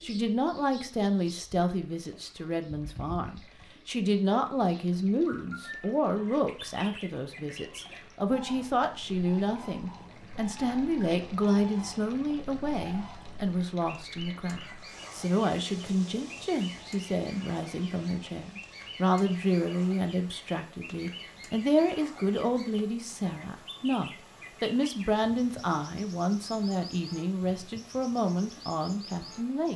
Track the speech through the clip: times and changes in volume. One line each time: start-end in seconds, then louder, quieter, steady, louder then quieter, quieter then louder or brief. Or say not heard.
0.0-29.7 steady.